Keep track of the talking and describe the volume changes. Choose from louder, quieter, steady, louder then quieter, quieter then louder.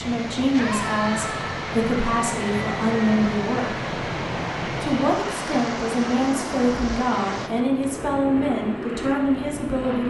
steady.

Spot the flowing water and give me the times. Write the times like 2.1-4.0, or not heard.
0.0-7.5.